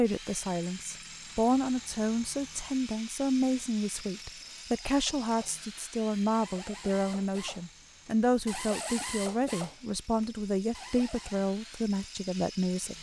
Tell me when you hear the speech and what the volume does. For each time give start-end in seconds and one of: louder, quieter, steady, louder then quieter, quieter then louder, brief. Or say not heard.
0.0-12.9 steady.